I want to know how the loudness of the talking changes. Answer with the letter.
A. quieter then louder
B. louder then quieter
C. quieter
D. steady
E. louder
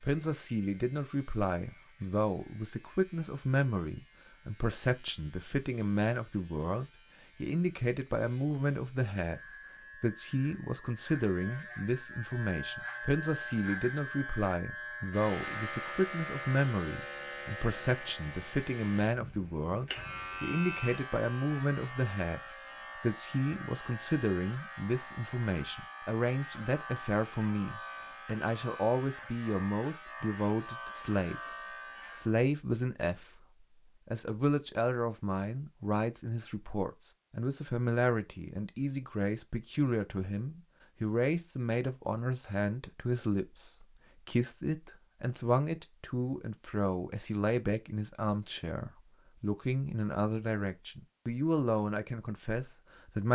D.